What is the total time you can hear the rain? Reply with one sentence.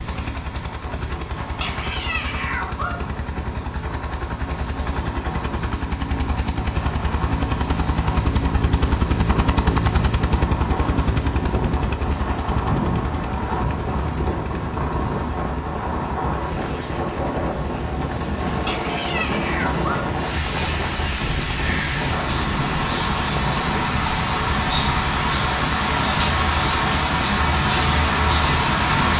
The rain can be heard for 29 seconds in total.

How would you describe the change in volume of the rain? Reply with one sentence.
The loudness of the rain goes up.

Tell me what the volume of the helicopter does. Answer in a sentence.
The loudness of the helicopter goes up, then down.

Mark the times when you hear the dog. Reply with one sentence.
The dog can be heard from 1.4 to 3.1 s and from 18.5 to 20.1 s.